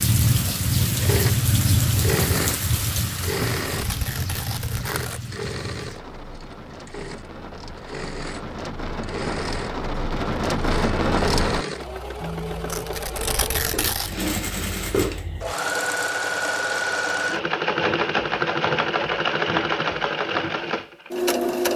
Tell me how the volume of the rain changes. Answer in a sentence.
The loudness of the rain goes down, then up.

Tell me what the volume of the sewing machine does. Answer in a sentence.
The volume of the sewing machine goes down, then up.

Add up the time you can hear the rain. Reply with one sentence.
The rain can be heard for 12 seconds in total.